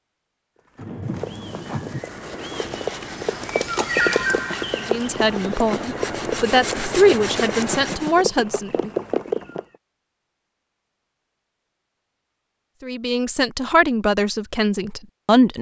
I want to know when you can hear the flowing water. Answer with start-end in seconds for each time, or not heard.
not heard.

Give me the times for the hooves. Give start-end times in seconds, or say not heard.
0.8-9.8.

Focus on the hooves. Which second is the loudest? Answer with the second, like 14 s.
4 s.